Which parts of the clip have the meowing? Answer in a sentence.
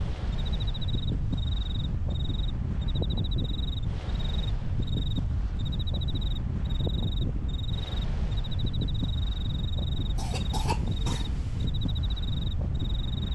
The meowing can't be heard in this clip.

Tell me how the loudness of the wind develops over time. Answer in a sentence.
The loudness of the wind stays about the same.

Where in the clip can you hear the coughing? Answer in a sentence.
You can hear the coughing from 10.2 to 11.7 s.